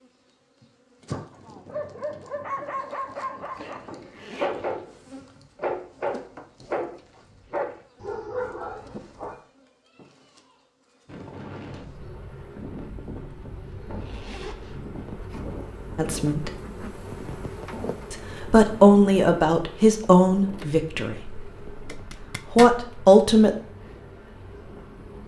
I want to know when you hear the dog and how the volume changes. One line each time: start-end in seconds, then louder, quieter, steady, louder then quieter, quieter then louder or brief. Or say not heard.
1.3-9.3 steady.